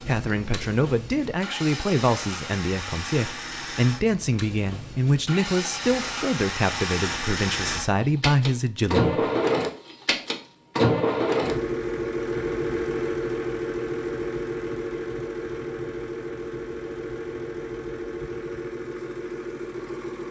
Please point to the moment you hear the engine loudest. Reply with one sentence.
The loudest moment of the engine is at 11 seconds.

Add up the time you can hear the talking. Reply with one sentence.
You can hear the talking for 9 seconds altogether.